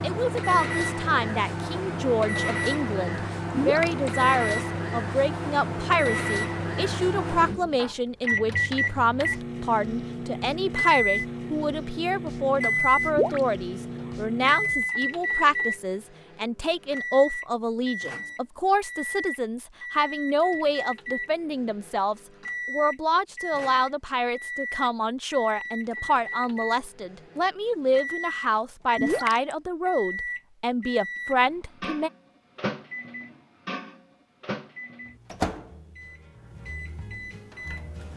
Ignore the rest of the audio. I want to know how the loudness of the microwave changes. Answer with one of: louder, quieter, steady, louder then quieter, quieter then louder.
quieter.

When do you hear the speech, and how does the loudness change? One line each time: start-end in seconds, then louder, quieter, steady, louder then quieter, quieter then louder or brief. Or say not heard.
0.0-32.1 steady.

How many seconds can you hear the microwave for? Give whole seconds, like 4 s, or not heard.
38 s.